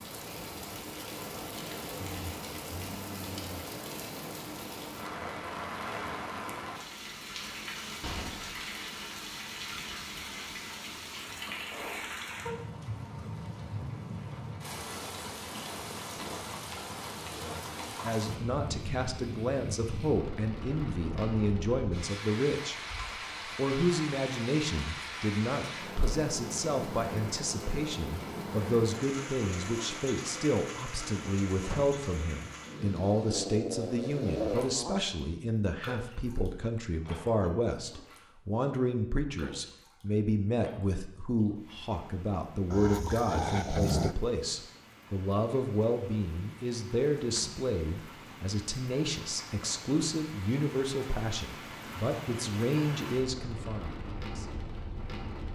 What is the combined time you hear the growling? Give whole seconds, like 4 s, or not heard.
5 s.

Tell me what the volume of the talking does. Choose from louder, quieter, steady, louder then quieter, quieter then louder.
steady.